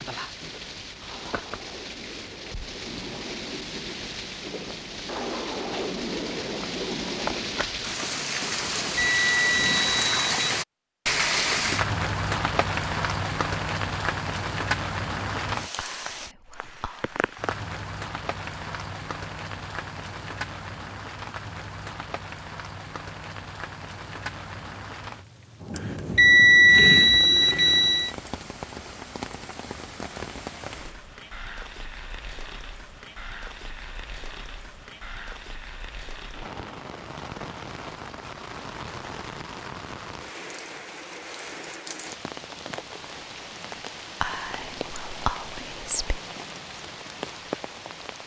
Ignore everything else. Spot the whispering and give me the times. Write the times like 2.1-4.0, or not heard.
15.8-17.4, 44.2-46.0.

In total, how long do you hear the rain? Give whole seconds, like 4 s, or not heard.
48 s.